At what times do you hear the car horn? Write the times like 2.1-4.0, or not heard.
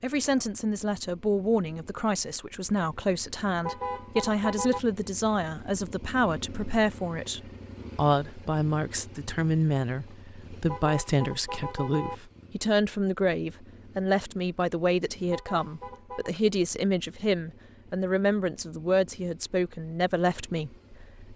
3.6-4.8, 10.7-12.2, 15.3-16.3.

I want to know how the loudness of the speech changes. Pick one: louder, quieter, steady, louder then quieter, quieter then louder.
steady.